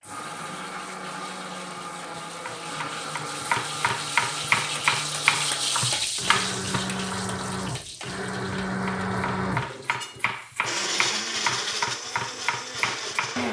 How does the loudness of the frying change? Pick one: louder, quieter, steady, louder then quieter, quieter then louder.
louder then quieter.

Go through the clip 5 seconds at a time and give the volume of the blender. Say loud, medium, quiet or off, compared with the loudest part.
medium, loud, loud.